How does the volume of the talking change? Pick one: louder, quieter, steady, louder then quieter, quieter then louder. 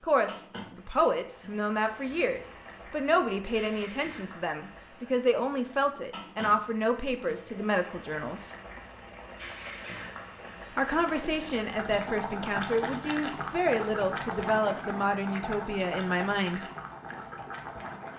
steady.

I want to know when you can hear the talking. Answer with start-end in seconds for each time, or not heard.
0.0-8.6, 10.8-16.6.